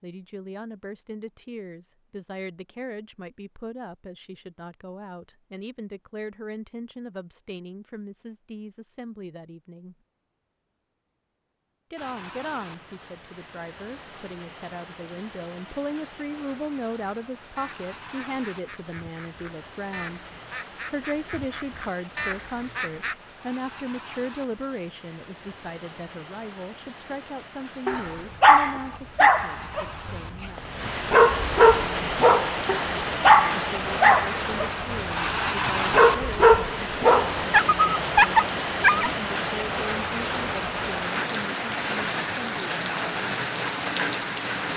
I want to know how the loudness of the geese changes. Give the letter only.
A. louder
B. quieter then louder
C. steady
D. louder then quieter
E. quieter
A.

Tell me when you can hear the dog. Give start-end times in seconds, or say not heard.
27.9-39.1.